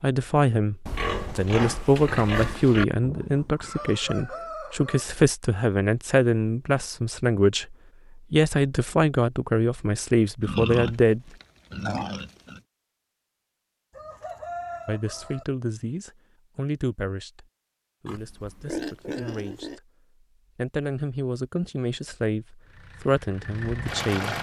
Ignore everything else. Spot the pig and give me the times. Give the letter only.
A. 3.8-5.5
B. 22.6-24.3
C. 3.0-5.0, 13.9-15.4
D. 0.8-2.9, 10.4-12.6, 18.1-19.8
D.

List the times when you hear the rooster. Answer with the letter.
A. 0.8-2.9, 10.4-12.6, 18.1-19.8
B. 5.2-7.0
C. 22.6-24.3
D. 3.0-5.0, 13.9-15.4
D.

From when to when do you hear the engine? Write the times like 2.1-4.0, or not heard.
22.6-24.3.